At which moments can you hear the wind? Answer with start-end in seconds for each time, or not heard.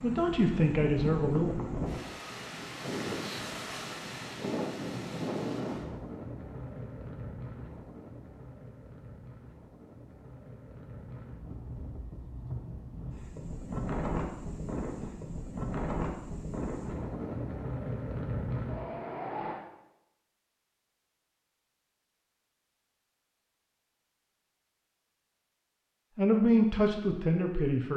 0.0-19.6.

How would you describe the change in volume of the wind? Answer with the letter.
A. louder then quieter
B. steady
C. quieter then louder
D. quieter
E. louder
C.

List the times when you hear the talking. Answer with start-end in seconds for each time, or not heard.
0.0-1.5, 26.1-27.9.